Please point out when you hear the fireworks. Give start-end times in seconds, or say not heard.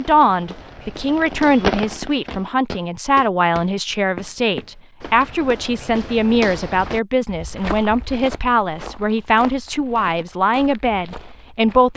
0.0-2.5.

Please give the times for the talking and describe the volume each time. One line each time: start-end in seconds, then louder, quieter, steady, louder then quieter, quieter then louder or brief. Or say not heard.
0.0-11.9 steady.